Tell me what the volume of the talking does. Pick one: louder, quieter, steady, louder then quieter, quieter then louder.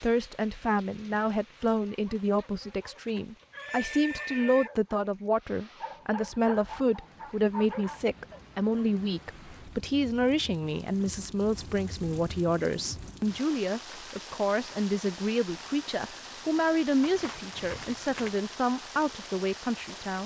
steady.